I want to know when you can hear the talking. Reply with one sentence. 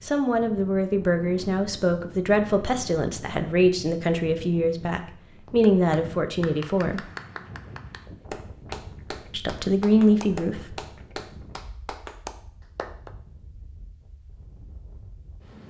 The talking can be heard from 0.0 to 7.0 s and from 9.3 to 10.8 s.